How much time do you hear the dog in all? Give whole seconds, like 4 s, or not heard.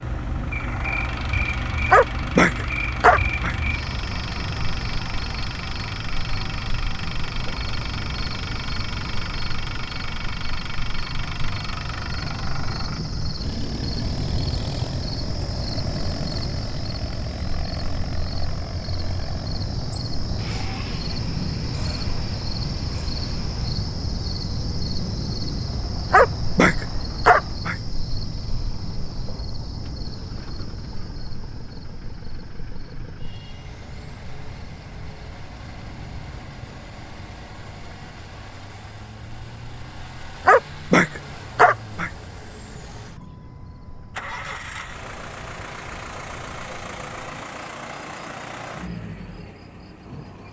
5 s.